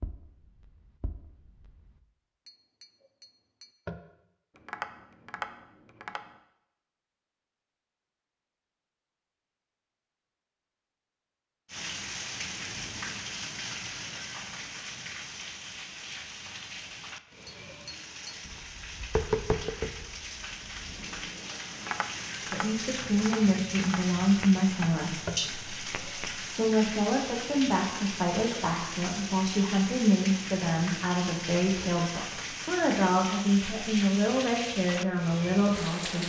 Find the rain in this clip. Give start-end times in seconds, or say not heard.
11.7-36.2.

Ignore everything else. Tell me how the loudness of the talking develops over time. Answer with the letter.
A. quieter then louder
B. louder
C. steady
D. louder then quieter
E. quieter
C.